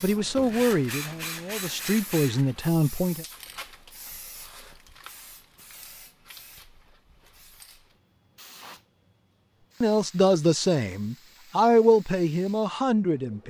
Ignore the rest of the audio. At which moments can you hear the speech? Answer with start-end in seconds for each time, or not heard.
0.0-3.2, 9.8-13.4.